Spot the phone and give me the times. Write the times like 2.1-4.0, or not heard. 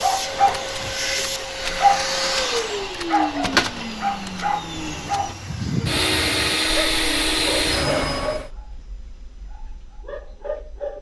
not heard.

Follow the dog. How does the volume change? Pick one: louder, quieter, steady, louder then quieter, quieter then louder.
quieter.